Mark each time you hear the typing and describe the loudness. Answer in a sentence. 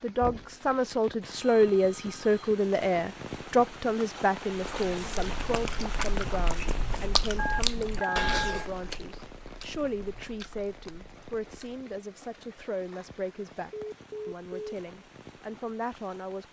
The typing can't be heard in this clip.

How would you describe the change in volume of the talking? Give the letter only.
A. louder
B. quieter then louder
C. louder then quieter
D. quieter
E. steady
D.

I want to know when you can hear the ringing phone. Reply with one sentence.
The ringing phone can be heard from 0.3 to 2.5 s, from 7.3 to 8.7 s and from 13.7 to 14.8 s.